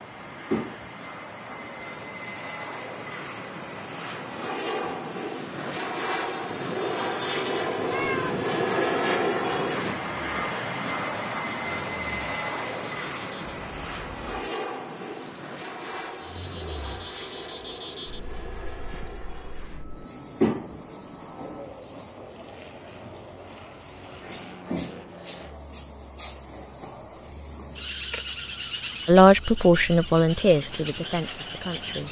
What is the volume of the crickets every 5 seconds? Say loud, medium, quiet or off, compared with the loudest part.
medium, quiet, quiet, medium, loud, loud, loud.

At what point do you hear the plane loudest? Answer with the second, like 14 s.
9 s.